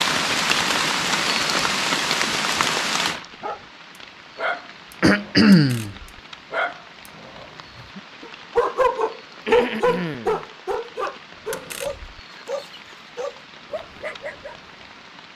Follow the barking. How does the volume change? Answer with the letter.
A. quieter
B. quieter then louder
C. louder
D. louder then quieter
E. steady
D.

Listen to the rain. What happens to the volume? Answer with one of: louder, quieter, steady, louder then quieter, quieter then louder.
quieter.